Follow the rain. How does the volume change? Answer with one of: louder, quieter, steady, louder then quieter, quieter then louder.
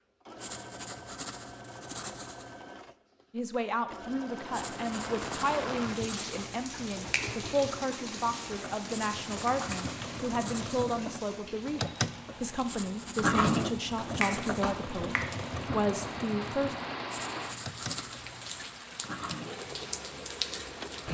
quieter then louder.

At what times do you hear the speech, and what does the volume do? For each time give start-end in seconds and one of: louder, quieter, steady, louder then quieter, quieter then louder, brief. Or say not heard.
3.3-16.8 steady.